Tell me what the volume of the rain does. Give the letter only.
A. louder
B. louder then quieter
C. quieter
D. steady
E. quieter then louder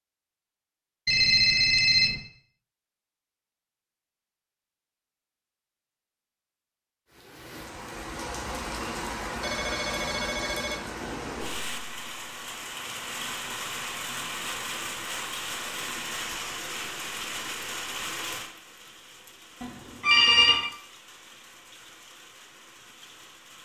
C.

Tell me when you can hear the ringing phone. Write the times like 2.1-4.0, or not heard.
1.1-2.2, 9.4-10.8, 19.6-20.7.